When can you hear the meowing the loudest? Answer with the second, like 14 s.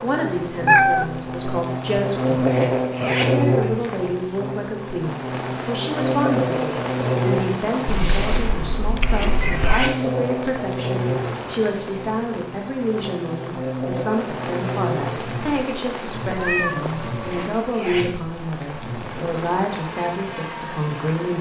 1 s.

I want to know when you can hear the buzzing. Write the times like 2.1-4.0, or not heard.
0.0-21.3.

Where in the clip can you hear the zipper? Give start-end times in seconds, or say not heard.
2.5-4.1, 9.1-10.8, 17.2-18.8.